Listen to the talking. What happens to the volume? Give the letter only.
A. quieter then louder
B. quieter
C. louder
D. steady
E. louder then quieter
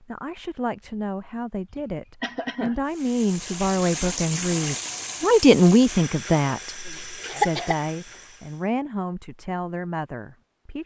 E.